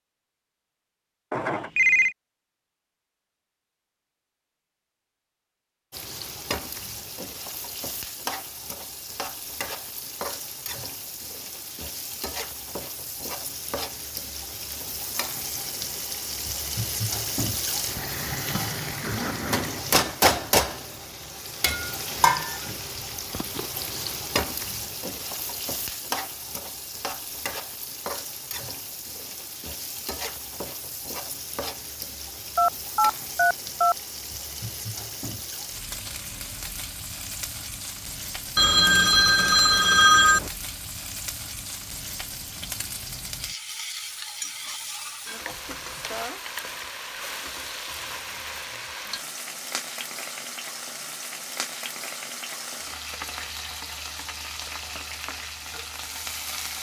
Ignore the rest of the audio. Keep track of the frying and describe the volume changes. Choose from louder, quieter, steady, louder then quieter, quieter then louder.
louder then quieter.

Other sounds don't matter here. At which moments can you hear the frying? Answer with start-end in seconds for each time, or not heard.
5.9-56.7.